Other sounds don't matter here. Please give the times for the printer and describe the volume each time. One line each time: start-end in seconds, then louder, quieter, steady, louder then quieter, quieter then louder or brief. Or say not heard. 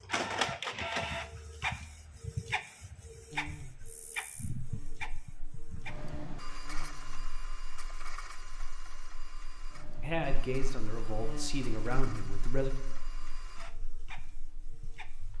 0.0-15.3 quieter.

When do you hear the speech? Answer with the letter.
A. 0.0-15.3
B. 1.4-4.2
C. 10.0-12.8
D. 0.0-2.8
C.